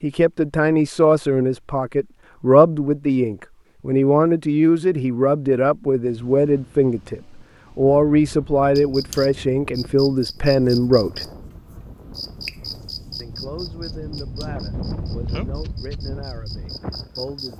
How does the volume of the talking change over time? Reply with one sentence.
The loudness of the talking goes down.